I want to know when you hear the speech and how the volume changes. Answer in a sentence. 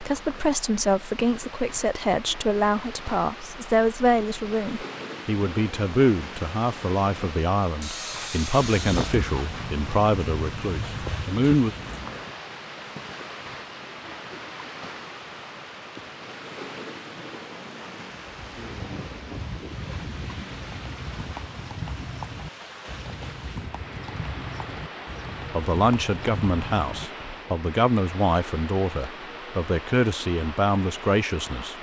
The speech can be heard from 0.0 to 11.8 s, at a steady volume; and from 25.5 to 31.7 s, at a steady volume.